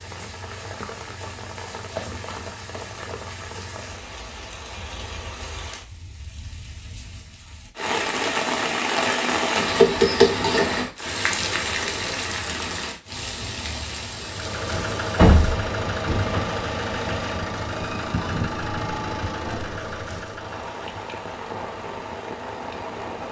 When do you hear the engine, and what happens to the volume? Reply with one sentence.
The engine can be heard from 14.2 to 23.2 s, getting quieter.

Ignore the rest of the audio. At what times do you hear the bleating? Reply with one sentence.
The bleating can't be heard in this clip.